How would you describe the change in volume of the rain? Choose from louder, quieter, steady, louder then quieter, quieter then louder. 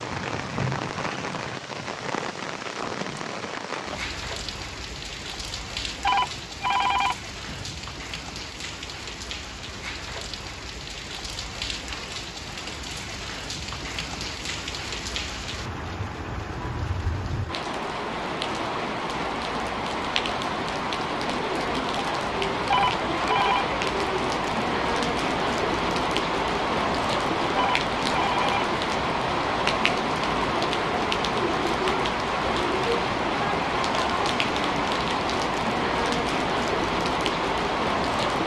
louder.